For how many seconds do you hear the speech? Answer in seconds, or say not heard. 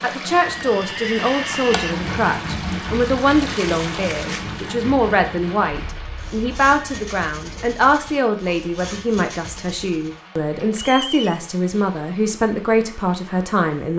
14 s.